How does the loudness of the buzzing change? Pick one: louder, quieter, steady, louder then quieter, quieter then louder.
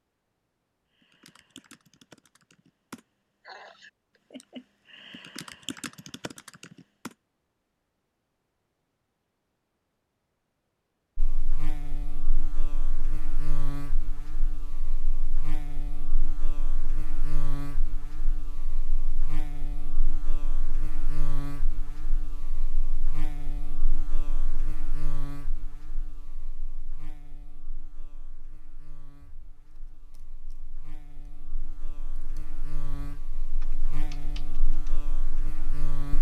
quieter then louder.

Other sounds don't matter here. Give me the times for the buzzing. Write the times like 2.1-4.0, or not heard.
11.2-36.1.